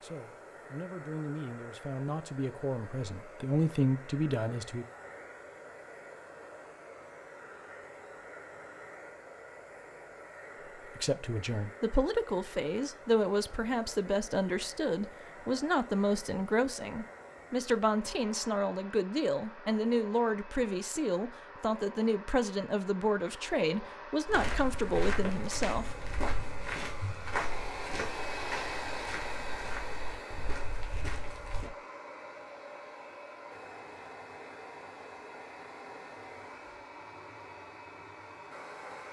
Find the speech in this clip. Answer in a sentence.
You can hear the speech from 0.0 to 4.8 s and from 10.9 to 25.9 s.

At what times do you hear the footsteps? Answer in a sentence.
You can hear the footsteps from 24.2 to 31.7 s.